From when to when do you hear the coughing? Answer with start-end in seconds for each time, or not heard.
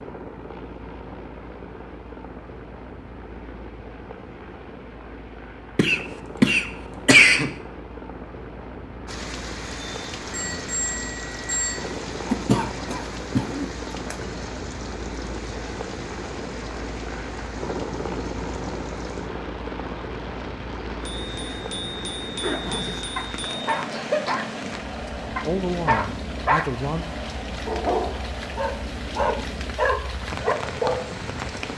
5.8-7.5, 12.3-14.2, 23.9-24.4.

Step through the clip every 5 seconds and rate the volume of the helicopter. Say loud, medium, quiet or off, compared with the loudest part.
medium, medium, loud, loud, loud, loud, medium.